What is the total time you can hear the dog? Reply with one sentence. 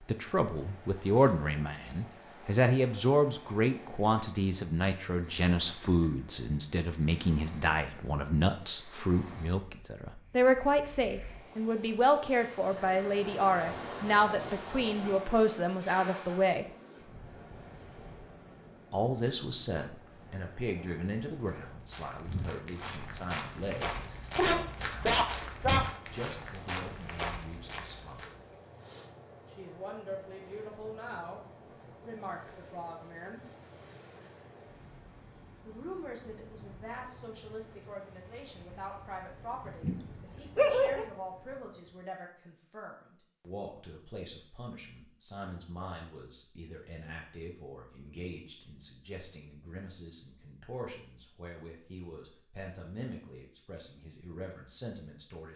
You can hear the dog for 3 seconds altogether.